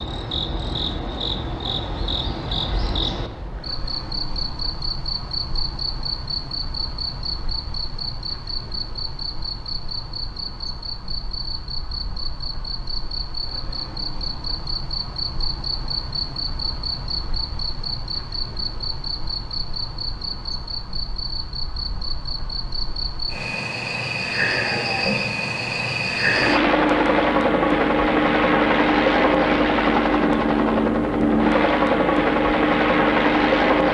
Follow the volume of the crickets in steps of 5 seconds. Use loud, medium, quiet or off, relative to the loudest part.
medium, medium, medium, medium, medium, loud, off.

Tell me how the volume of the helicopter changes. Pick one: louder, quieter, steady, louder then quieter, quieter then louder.
steady.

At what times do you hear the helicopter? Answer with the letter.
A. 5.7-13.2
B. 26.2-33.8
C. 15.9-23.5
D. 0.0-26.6
B.